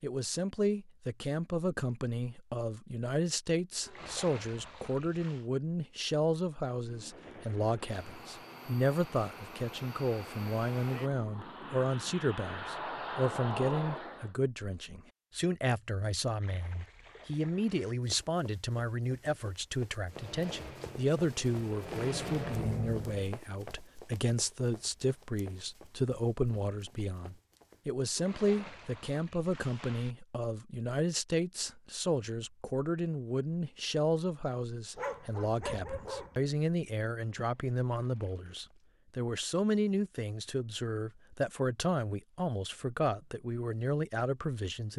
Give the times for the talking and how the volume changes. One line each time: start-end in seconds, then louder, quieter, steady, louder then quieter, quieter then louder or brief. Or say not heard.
0.0-44.9 steady.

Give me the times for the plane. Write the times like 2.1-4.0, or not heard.
6.8-14.3, 20.1-23.4.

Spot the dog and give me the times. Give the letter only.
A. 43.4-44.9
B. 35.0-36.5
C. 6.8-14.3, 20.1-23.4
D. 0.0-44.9
B.